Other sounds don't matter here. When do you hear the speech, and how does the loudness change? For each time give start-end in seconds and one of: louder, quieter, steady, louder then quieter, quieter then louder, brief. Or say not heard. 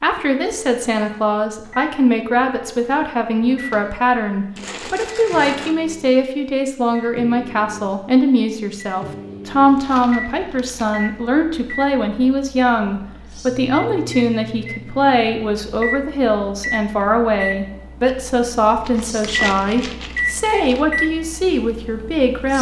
0.0-22.5 steady.